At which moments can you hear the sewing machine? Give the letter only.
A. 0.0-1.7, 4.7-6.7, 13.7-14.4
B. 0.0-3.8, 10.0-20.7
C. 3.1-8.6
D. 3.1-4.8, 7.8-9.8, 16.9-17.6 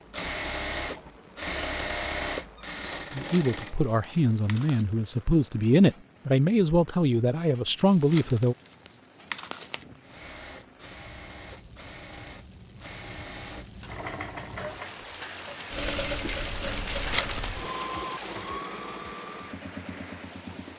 B.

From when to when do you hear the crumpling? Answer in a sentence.
The crumpling can be heard from 3.1 to 4.8 s, from 7.8 to 9.8 s and from 16.9 to 17.6 s.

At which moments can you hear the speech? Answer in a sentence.
The speech can be heard from 3.1 to 8.6 s.